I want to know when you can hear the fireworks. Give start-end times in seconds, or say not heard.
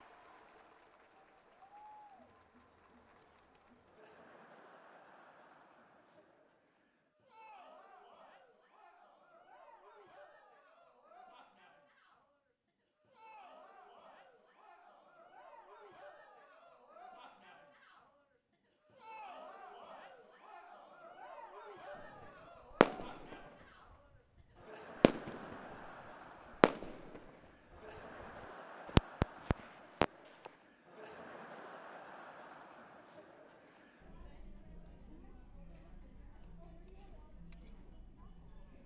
22.8-23.4, 25.0-25.6, 26.6-27.2, 28.9-30.5.